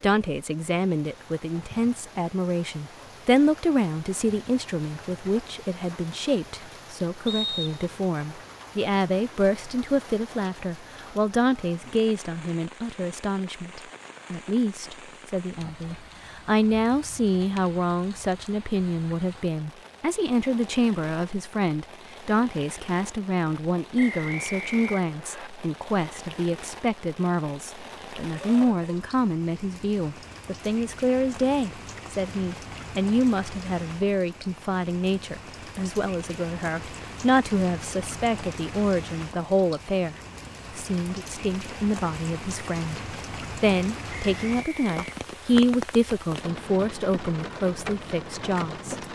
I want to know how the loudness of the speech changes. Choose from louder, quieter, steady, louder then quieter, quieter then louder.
steady.